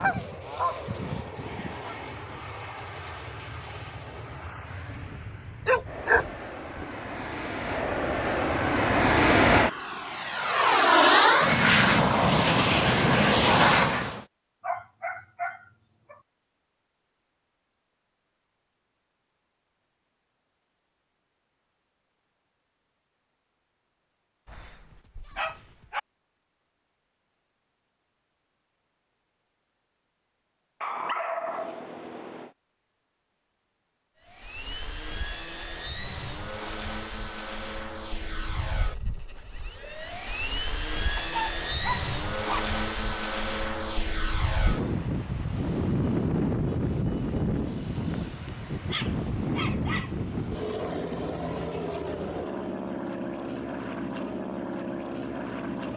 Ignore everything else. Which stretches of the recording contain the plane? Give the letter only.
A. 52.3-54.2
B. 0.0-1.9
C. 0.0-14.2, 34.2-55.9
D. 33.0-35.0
C.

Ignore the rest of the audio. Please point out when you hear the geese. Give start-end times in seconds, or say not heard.
0.0-1.9.